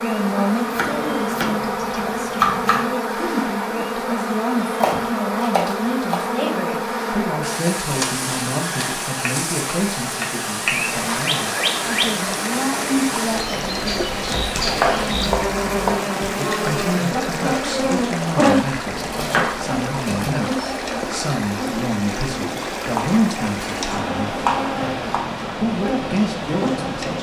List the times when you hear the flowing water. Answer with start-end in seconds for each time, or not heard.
10.7-27.1.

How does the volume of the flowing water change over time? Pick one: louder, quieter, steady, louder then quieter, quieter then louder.
steady.